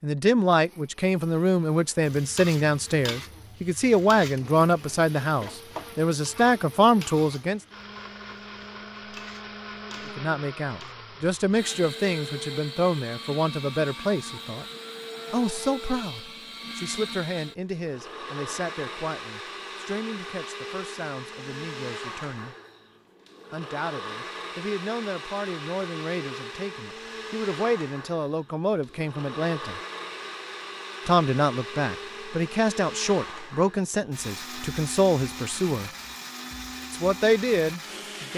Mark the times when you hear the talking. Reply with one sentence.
You can hear the talking from 0.0 to 7.6 s, from 10.1 to 14.7 s, from 15.3 to 22.6 s, from 23.5 to 29.8 s, from 31.1 to 35.9 s and from 36.9 to 38.3 s.